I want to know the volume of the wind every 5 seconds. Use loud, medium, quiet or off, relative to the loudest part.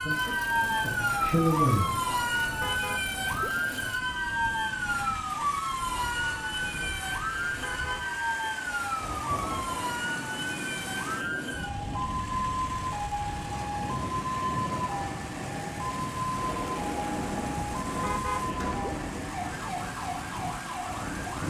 medium, medium, loud, loud, loud.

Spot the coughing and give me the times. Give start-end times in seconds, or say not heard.
not heard.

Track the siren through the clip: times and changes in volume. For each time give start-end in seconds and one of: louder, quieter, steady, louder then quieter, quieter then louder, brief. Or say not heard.
0.0-21.4 quieter.